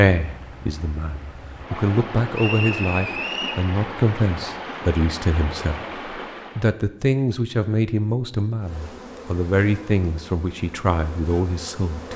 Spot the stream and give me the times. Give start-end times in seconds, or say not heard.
0.2-6.8.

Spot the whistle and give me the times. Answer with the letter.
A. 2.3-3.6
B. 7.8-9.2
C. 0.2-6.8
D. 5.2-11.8
A.